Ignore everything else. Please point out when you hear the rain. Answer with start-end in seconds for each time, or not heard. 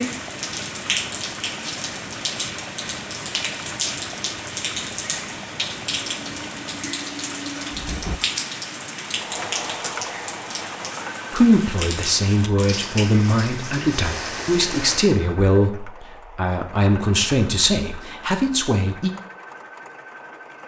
0.0-15.2.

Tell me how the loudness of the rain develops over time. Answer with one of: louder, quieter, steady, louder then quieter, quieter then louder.
steady.